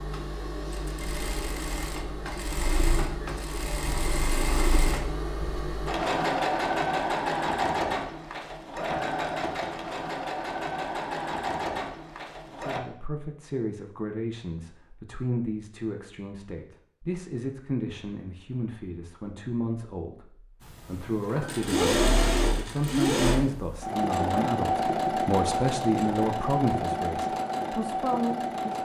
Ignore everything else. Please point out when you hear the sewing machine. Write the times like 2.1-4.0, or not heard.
0.0-12.8, 20.6-28.8.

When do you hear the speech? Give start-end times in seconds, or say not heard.
12.6-28.8.